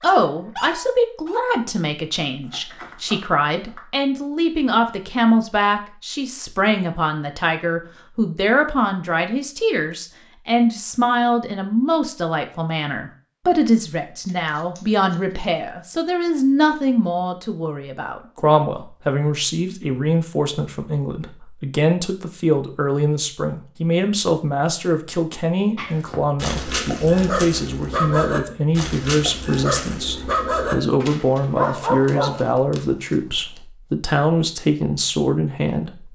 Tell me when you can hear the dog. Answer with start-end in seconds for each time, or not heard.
0.0-1.6, 25.8-32.5.